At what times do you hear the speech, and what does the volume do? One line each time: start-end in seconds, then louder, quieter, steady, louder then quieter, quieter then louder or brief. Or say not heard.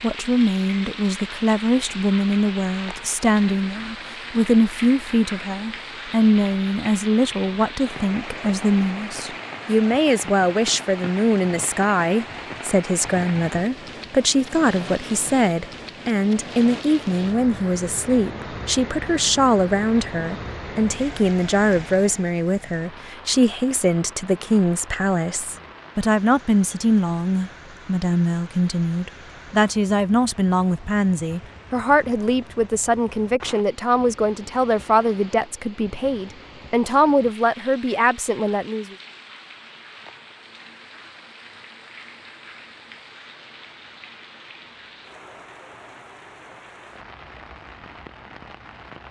0.0-39.0 steady.